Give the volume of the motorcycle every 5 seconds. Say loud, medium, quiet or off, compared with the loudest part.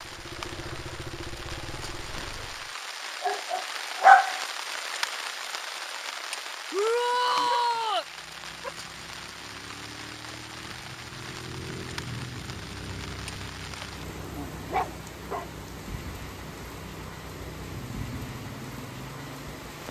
loud, medium, loud, loud.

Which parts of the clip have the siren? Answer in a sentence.
You can't hear the siren here.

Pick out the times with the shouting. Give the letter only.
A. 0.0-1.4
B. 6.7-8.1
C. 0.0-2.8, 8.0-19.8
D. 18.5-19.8
B.